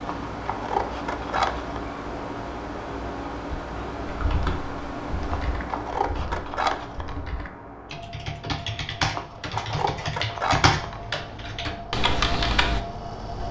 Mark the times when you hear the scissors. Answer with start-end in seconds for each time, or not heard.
0.1-1.8, 5.3-7.2, 9.2-11.0.